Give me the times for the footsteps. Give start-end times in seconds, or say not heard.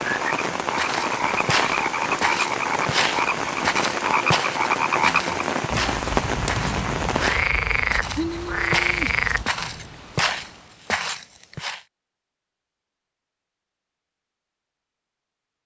0.8-11.8.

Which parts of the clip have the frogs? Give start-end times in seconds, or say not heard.
0.0-9.4.